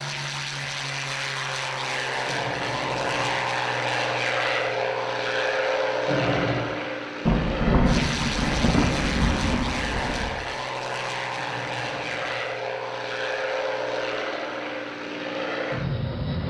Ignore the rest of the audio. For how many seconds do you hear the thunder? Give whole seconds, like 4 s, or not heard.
3 s.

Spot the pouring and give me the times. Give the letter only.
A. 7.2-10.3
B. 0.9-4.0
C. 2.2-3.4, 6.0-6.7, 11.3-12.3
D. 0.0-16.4
C.